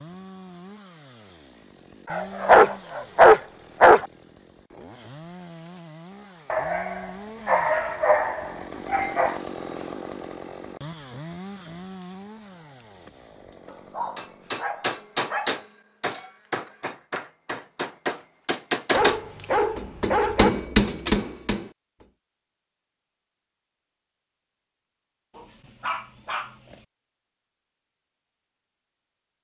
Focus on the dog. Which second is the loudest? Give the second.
3 s.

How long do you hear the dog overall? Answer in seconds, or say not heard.
10 s.